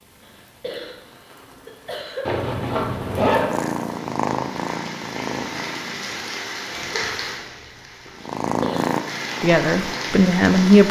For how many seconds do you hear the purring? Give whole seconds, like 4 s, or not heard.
6 s.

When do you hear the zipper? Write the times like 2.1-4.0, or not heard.
2.2-3.5, 6.7-8.2.